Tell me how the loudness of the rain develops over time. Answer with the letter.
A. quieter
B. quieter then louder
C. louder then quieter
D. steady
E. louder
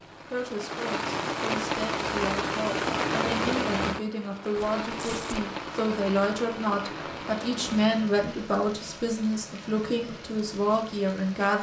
A.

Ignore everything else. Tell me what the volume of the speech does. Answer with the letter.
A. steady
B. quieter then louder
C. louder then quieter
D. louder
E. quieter
D.